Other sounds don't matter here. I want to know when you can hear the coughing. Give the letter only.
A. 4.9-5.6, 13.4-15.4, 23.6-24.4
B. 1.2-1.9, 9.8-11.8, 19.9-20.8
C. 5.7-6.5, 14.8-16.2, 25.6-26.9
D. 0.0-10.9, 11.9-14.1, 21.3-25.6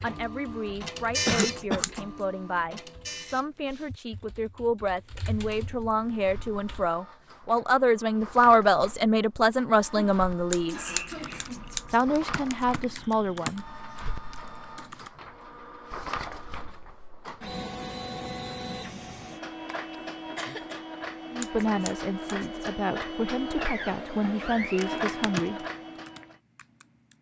B.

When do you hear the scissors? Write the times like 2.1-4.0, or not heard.
1.4-2.2, 10.5-11.9, 21.4-22.6.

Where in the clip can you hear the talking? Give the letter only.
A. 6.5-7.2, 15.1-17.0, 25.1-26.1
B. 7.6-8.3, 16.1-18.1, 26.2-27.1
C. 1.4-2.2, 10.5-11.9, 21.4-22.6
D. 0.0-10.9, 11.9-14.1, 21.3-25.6
D.